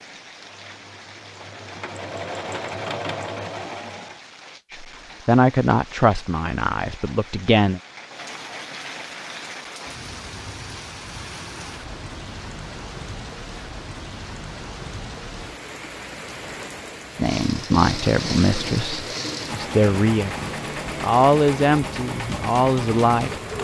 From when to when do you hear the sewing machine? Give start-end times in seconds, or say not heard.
0.0-4.2, 17.1-23.5.